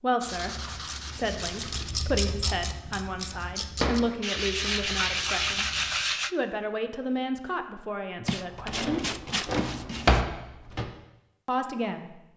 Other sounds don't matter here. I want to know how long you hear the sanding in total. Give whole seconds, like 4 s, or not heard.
6 s.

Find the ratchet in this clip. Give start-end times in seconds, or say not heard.
0.2-6.2.